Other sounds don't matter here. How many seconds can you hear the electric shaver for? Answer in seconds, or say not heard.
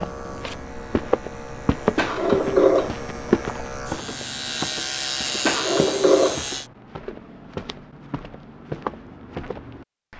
7 s.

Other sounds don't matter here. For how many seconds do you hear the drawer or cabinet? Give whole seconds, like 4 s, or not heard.
2 s.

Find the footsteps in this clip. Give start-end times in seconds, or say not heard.
0.0-10.1.